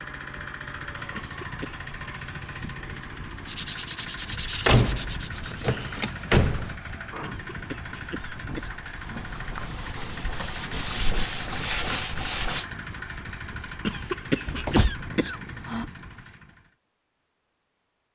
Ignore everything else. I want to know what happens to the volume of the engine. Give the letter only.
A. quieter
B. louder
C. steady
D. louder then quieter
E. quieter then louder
C.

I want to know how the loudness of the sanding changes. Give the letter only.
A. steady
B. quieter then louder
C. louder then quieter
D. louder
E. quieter
B.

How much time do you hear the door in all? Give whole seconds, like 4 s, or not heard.
3 s.